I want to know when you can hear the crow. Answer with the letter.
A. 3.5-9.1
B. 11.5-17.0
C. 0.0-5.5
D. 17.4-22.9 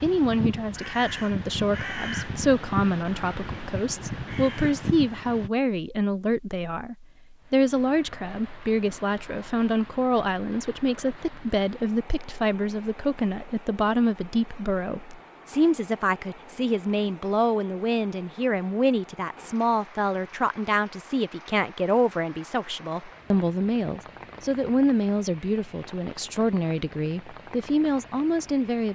C.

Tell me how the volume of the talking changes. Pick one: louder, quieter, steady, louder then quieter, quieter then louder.
steady.